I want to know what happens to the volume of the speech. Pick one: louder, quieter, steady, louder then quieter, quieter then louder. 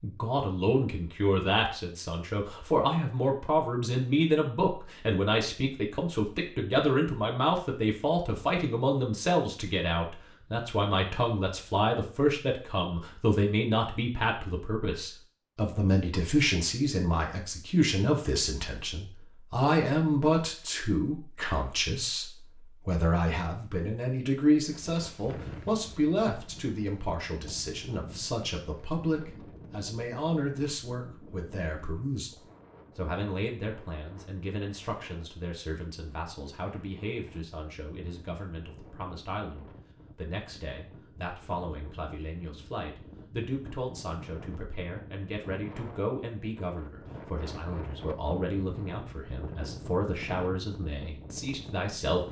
quieter.